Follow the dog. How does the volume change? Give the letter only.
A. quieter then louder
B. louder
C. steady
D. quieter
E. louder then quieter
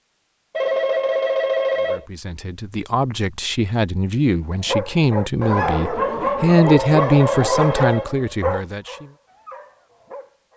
D.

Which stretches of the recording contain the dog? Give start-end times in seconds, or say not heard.
4.6-10.5.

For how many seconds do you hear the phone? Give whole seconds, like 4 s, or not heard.
3 s.